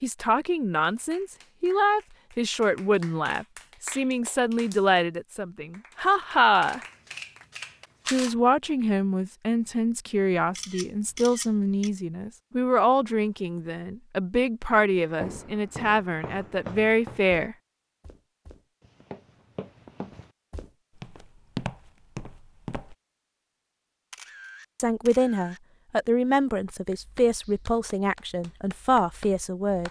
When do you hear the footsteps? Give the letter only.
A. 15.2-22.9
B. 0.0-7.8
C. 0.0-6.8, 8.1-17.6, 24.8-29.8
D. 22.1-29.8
A.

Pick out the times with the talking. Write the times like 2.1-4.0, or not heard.
0.0-6.8, 8.1-17.6, 24.8-29.8.